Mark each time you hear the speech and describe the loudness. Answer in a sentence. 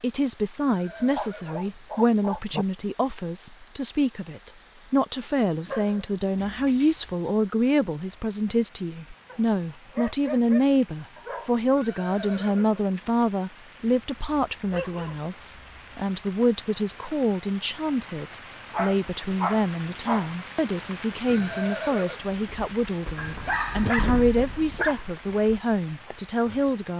You can hear the speech from 0.0 to 26.9 s, at a steady volume.